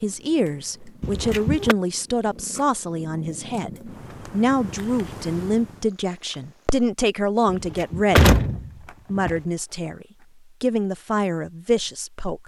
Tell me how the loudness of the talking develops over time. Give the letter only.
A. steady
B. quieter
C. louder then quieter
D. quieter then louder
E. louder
A.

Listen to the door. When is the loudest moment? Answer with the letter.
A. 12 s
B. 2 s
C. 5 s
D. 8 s
D.